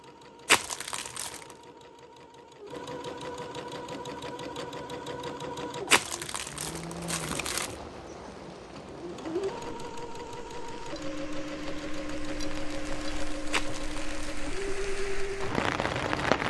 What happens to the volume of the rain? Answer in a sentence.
The volume of the rain goes down, then up.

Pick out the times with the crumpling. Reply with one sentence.
You can hear the crumpling from 0.5 to 1.4 s, from 5.9 to 7.7 s and from 13.5 to 14.2 s.